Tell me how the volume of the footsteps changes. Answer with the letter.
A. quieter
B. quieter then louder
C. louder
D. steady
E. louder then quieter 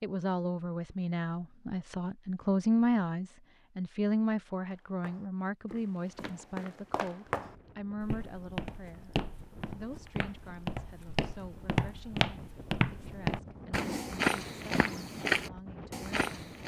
C.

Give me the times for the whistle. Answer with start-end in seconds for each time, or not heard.
not heard.